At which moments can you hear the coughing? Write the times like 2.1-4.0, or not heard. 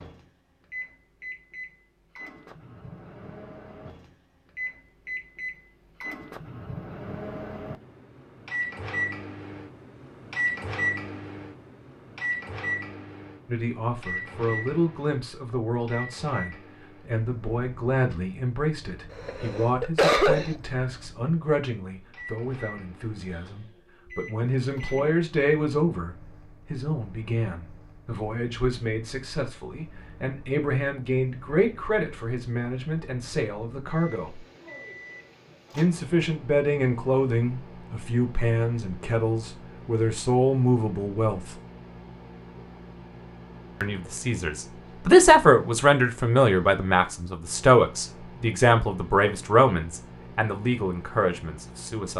19.1-20.6.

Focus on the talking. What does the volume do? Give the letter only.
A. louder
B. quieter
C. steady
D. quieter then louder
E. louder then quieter
A.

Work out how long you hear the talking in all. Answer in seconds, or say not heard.
35 s.